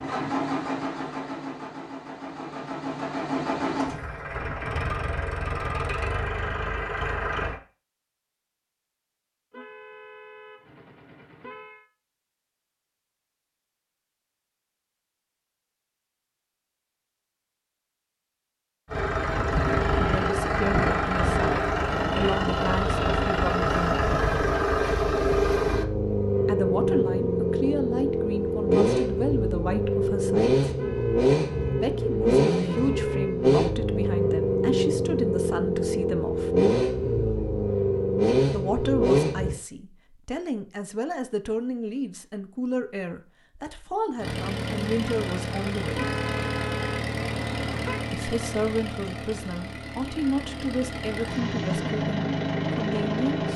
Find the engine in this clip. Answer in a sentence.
You can hear the engine from 0.0 to 7.6 s, from 18.9 to 39.5 s and from 44.1 to 53.5 s.